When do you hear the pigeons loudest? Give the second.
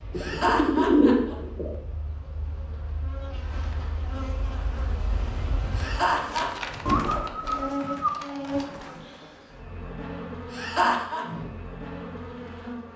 1 s.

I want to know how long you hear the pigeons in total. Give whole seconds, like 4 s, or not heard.
4 s.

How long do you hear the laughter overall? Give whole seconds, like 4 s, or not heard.
3 s.